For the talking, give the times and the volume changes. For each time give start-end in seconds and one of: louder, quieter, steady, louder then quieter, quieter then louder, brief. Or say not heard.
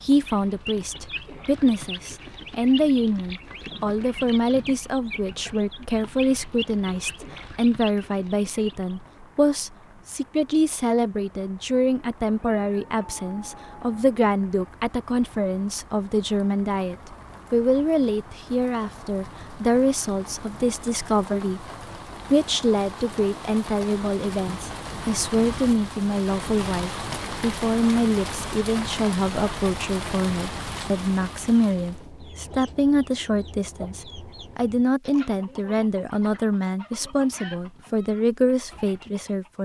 0.0-21.6 steady
22.3-39.6 steady.